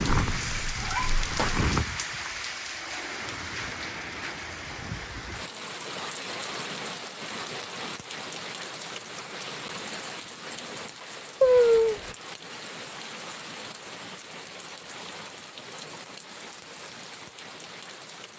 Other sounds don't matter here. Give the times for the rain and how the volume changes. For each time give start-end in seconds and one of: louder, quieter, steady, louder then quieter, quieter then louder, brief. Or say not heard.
0.0-18.3 quieter.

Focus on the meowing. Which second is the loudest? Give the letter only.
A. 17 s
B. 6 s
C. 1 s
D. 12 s
D.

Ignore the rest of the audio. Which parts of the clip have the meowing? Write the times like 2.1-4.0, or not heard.
0.3-1.7, 11.4-12.1.